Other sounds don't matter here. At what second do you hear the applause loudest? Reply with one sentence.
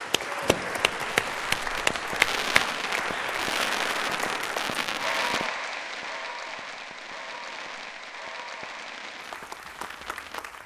The volume of the applause peaks at 2 seconds.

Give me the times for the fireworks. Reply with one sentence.
The fireworks can be heard from 0.5 to 10.4 s.